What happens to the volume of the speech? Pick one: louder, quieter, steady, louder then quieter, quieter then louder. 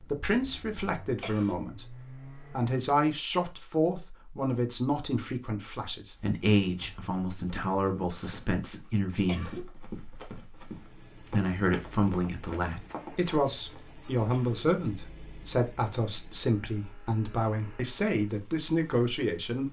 steady.